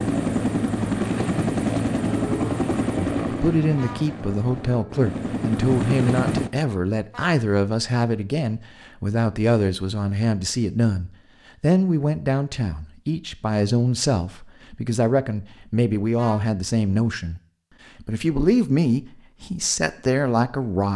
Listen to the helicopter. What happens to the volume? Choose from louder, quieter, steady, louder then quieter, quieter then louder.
quieter then louder.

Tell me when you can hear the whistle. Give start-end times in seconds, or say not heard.
not heard.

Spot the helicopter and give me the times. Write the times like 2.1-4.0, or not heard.
0.0-6.5.